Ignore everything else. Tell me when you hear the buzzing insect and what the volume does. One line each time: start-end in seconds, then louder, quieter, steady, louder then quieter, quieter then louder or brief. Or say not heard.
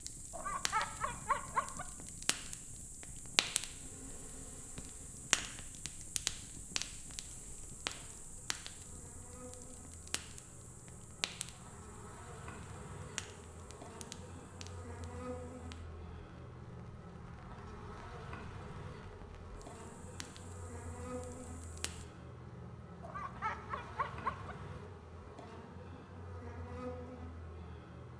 3.5-28.1 louder.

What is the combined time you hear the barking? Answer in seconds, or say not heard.
3 s.